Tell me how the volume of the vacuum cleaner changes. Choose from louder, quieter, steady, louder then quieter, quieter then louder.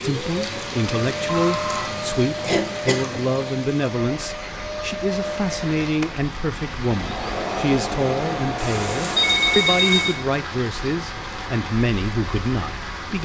steady.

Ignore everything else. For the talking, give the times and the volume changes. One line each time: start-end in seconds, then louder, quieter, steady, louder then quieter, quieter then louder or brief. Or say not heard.
0.0-13.1 steady.